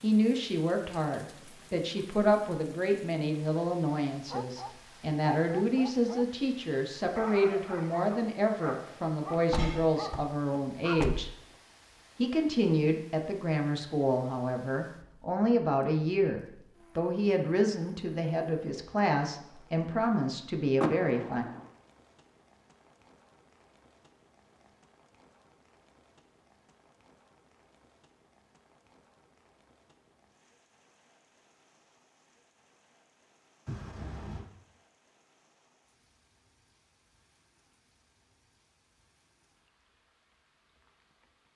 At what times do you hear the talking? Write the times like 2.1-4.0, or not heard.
0.0-11.3, 12.2-21.4.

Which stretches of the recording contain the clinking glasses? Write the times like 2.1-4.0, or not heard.
not heard.